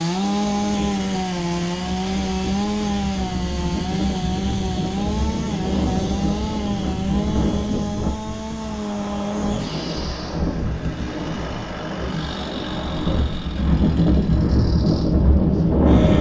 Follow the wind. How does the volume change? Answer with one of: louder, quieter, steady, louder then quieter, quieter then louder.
louder.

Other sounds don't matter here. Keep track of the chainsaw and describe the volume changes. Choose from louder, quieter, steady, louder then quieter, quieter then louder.
quieter.